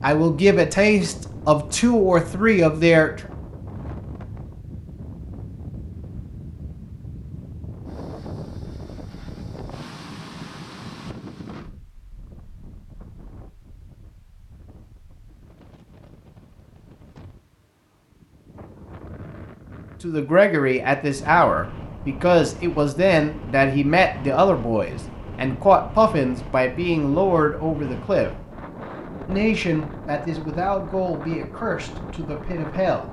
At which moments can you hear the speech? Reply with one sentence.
You can hear the speech from 0.0 to 3.1 s, from 20.0 to 28.3 s and from 29.2 to 33.0 s.